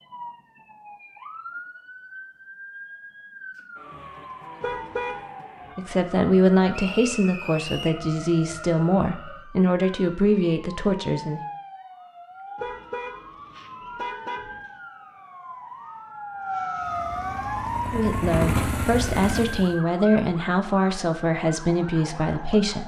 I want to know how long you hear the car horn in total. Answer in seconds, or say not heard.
3 s.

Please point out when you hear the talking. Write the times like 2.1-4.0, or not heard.
5.8-11.4, 17.9-22.8.